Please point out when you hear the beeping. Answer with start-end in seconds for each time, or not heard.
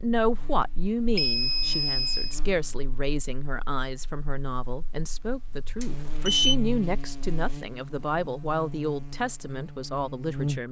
1.1-2.4, 5.8-6.5.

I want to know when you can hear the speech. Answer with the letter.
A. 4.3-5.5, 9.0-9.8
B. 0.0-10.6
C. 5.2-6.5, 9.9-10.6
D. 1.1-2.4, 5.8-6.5
B.